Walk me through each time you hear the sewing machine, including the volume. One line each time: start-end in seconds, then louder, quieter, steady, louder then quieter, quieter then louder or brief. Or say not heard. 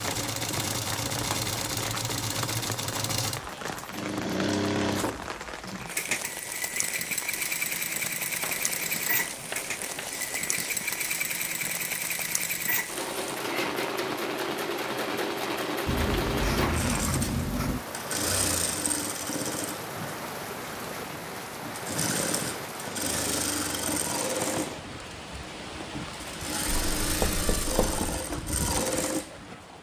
0.0-29.7 steady.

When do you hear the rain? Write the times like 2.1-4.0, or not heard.
0.0-29.7.